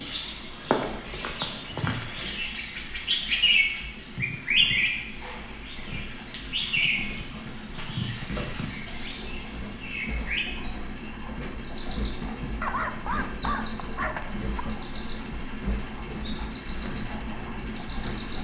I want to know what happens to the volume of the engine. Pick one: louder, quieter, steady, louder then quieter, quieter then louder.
louder.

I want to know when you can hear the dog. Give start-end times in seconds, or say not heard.
12.6-14.7.